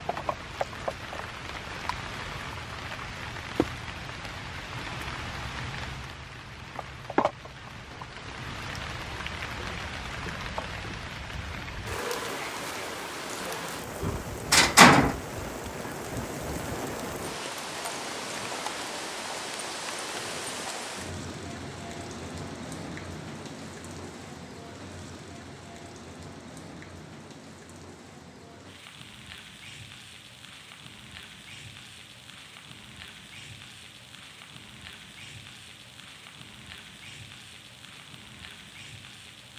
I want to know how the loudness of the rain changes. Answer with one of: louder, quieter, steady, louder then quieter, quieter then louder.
quieter.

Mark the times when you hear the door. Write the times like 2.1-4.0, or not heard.
14.0-15.2.